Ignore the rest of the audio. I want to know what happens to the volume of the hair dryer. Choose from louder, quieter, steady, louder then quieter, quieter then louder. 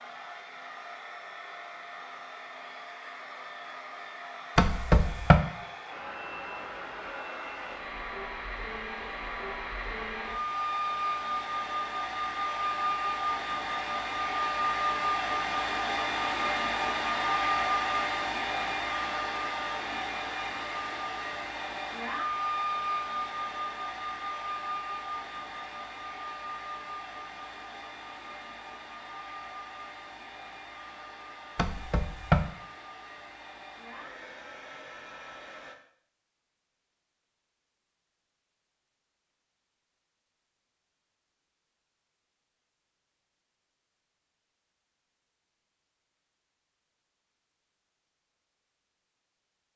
louder then quieter.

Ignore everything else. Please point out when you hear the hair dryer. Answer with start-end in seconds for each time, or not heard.
0.0-35.8.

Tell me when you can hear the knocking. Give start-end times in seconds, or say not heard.
4.5-5.4, 31.6-32.5.